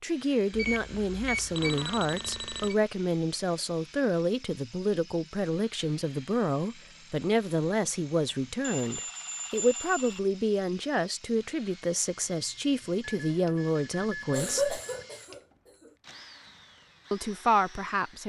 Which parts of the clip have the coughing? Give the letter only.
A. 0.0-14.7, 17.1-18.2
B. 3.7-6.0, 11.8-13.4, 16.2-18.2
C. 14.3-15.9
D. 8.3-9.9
C.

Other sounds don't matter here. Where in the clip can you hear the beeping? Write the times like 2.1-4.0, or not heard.
0.5-2.8, 8.6-10.2, 13.0-15.1.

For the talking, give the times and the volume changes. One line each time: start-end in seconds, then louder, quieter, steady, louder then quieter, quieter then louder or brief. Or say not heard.
0.0-14.7 steady
17.1-18.2 brief.